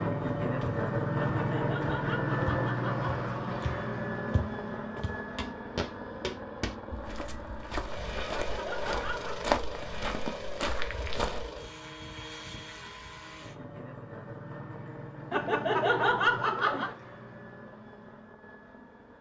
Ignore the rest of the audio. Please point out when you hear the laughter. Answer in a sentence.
The laughter can be heard from 1.1 to 3.2 s, from 8.1 to 9.4 s and from 15.3 to 16.9 s.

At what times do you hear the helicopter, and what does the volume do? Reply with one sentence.
The helicopter can be heard from 0.0 to 19.1 s, getting quieter.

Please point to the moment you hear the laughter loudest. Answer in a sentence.
The volume of the laughter peaks at 16 seconds.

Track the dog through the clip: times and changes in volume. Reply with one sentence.
The dog can't be heard in this clip.